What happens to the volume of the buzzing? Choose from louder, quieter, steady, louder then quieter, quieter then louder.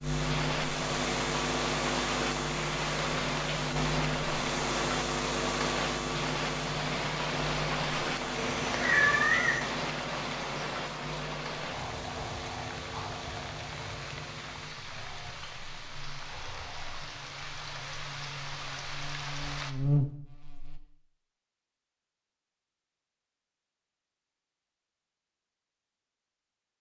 quieter then louder.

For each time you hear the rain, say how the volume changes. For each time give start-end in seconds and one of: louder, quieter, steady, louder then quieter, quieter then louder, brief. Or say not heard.
0.0-19.8 quieter.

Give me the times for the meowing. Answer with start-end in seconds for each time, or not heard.
8.3-9.7.